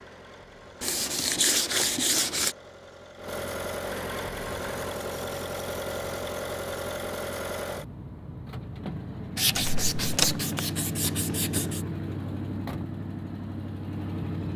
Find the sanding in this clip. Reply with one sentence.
You can hear the sanding from 0.8 to 2.5 s and from 9.3 to 11.8 s.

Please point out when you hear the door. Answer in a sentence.
You can hear the door from 9.6 to 10.4 s.